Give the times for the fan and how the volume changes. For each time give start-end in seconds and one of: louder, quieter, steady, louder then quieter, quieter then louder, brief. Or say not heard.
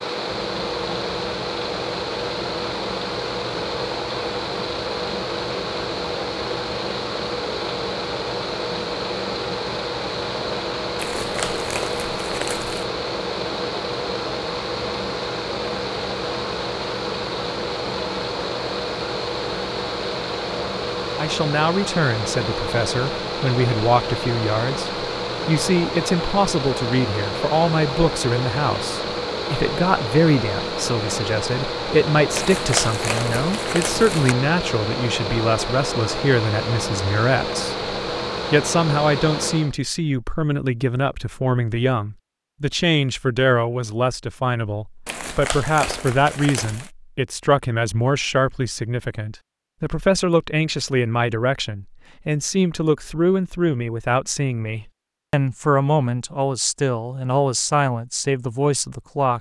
0.0-39.8 steady.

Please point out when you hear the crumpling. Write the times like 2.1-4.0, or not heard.
10.9-12.9, 32.3-34.4, 45.0-46.9.